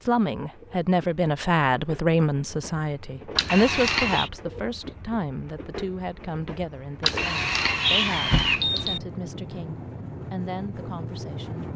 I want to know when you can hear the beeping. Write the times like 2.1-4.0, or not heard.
3.4-4.3, 7.0-9.0.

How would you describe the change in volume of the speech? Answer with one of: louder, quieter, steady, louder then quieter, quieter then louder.
quieter.